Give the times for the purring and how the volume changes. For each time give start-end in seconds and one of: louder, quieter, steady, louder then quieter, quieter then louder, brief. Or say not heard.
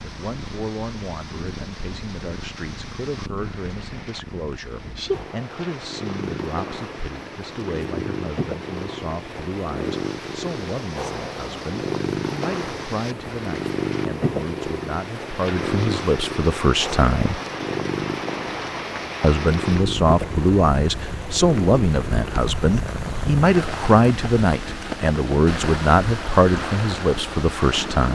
0.0-28.1 louder then quieter.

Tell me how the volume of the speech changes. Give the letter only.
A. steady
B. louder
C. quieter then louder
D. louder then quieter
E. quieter
B.